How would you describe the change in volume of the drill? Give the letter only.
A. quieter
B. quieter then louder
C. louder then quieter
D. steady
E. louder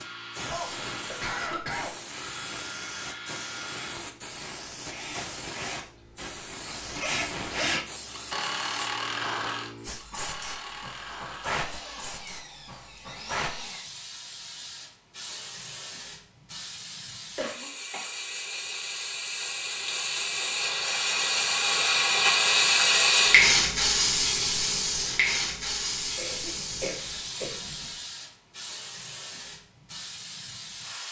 C.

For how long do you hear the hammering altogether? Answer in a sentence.
You can't hear the hammering here.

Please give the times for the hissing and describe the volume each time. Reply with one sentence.
The hissing can be heard from 0.0 to 31.0 s, getting louder then quieter.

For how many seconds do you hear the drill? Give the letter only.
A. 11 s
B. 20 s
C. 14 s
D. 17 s
C.